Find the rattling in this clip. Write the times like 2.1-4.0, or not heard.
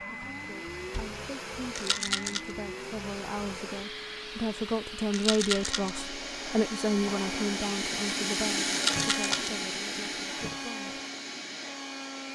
1.8-2.5, 5.1-6.0, 8.7-9.5.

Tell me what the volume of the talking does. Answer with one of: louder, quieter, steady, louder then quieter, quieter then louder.
louder then quieter.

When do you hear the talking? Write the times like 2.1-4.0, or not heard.
0.1-11.0.